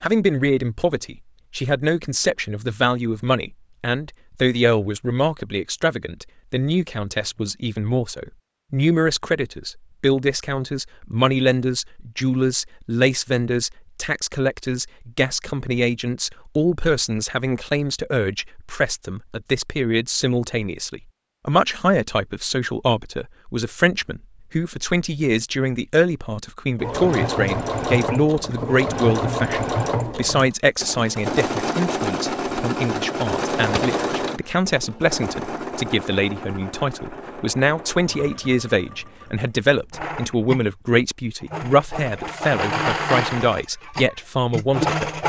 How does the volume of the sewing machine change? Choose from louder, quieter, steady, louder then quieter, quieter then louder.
quieter then louder.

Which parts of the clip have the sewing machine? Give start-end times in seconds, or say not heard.
26.8-45.2.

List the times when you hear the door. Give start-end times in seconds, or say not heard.
33.5-34.5.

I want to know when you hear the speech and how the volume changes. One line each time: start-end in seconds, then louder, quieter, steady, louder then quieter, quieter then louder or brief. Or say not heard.
0.0-45.2 steady.